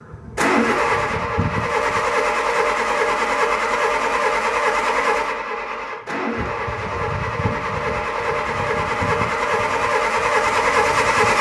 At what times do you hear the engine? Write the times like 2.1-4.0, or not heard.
0.0-11.3.